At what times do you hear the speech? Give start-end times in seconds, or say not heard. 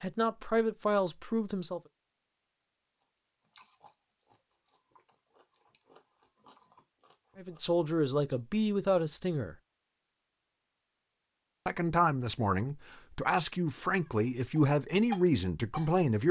0.0-1.8, 7.3-9.6, 11.7-16.2.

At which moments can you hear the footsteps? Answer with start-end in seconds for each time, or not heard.
not heard.